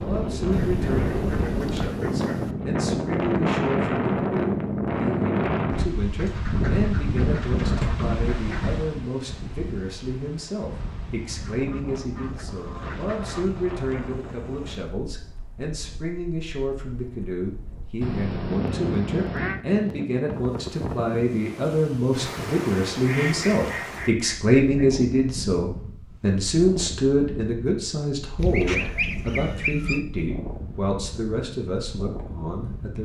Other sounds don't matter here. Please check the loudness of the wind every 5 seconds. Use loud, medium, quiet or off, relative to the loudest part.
loud, loud, quiet, quiet, medium, quiet, quiet.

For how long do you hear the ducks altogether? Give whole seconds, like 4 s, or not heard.
12 s.